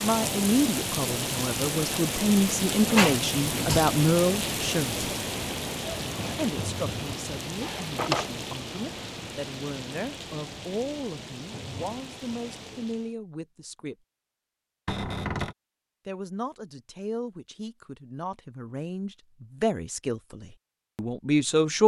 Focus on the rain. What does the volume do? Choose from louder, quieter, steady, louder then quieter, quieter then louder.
quieter.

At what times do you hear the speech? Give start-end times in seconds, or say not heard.
0.0-5.0, 6.3-13.9, 16.1-21.8.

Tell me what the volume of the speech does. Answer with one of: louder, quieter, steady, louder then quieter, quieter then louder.
quieter then louder.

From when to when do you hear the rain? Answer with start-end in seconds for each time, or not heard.
0.0-13.2.